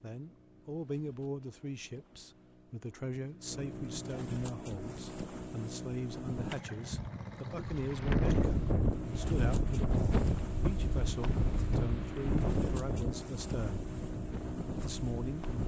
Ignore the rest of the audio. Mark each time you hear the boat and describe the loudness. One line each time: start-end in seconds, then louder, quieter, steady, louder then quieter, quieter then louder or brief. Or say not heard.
0.0-15.6 louder.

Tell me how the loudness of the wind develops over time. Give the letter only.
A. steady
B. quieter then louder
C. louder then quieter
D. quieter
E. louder
D.